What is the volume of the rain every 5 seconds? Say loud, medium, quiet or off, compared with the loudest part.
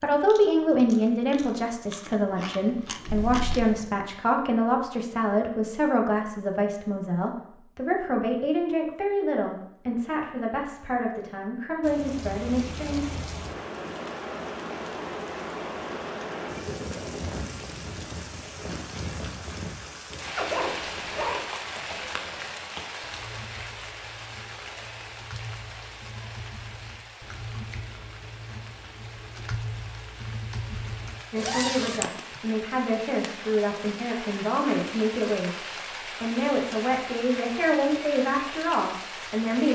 off, off, loud, loud, loud, medium, medium, loud.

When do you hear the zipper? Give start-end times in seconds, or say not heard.
3.0-3.7, 20.4-21.4, 31.4-32.1.